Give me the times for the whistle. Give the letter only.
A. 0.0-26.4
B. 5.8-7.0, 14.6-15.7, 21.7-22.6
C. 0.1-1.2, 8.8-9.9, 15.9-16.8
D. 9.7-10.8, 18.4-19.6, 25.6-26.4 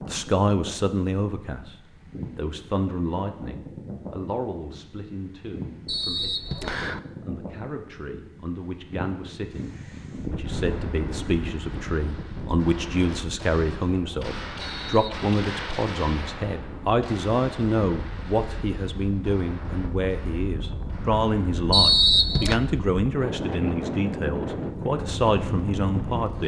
B.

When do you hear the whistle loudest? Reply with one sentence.
The loudest moment of the whistle is at 22 seconds.